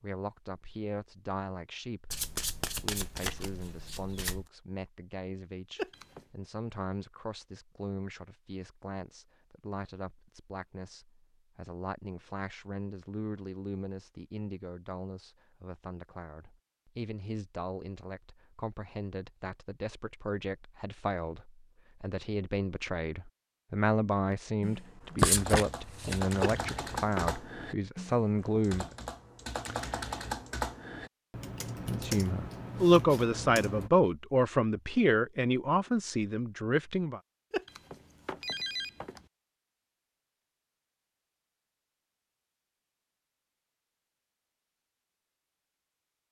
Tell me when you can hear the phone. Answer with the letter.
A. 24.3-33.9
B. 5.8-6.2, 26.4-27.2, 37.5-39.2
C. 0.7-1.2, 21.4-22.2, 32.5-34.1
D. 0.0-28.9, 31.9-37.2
B.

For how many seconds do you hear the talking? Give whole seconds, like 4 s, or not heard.
34 s.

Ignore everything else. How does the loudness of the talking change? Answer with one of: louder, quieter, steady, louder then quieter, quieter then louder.
louder.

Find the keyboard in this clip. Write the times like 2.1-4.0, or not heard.
24.3-33.9.